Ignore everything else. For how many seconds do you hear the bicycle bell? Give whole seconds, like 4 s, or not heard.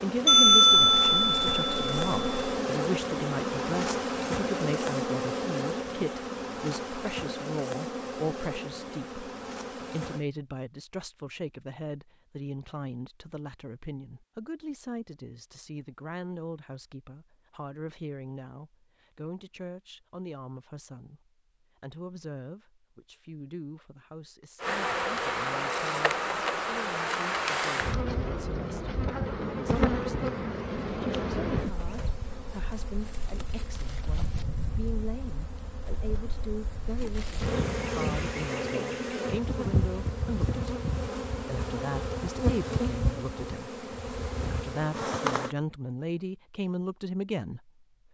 2 s.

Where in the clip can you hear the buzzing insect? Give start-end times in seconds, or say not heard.
0.0-10.2, 24.6-45.5.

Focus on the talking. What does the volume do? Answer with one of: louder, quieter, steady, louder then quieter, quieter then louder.
quieter then louder.